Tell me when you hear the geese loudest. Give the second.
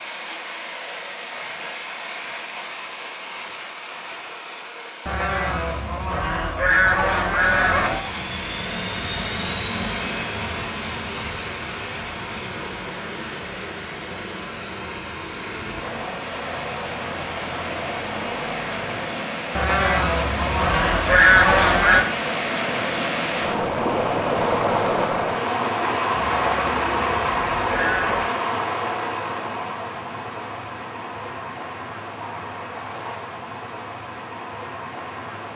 21 s.